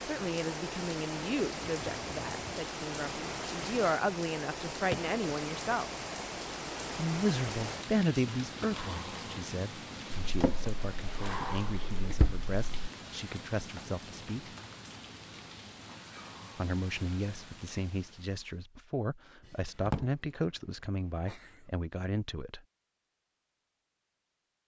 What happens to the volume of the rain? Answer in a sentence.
The loudness of the rain goes down.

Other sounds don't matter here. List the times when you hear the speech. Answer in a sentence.
You can hear the speech from 0.0 to 5.9 s, from 7.0 to 14.5 s and from 16.6 to 22.6 s.